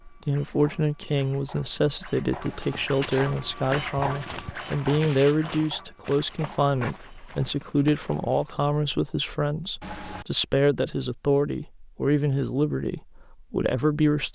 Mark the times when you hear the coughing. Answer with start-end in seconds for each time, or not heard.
2.4-2.9, 9.8-10.2.